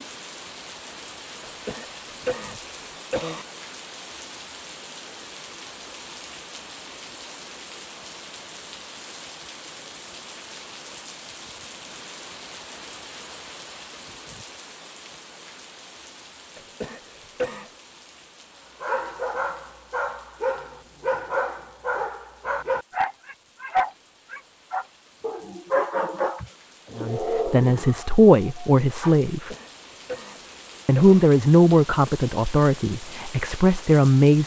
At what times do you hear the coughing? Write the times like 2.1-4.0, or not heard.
1.4-3.5, 16.6-17.7, 29.5-31.2.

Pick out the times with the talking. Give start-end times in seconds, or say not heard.
26.9-29.5, 30.9-34.4.